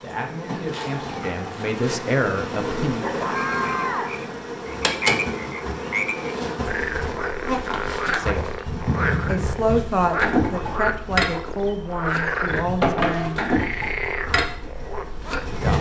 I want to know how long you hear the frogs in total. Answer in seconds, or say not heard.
13 s.